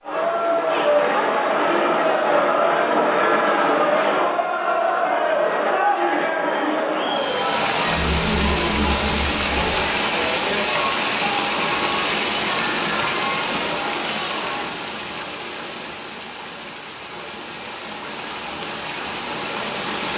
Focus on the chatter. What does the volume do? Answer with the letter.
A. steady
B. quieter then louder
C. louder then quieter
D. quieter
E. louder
D.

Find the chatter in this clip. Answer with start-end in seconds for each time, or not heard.
0.0-14.7.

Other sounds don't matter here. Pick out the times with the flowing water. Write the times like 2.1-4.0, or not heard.
7.0-20.1.